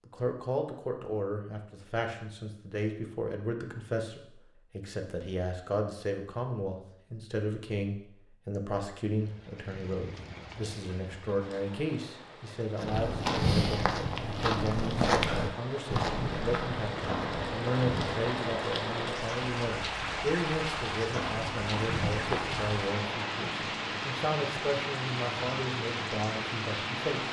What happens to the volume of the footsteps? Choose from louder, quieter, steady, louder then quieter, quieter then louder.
quieter then louder.